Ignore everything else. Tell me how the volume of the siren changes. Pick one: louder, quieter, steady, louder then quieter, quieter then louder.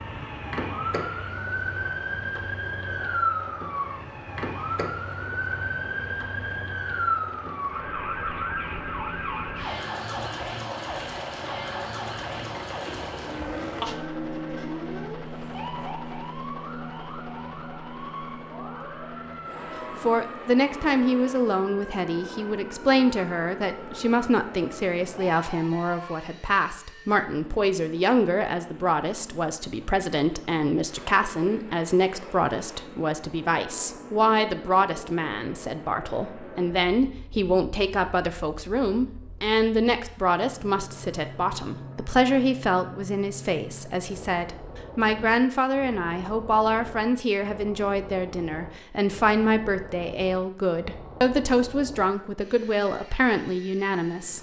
quieter.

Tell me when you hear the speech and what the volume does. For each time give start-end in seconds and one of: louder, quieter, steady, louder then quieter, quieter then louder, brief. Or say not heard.
19.9-54.3 steady.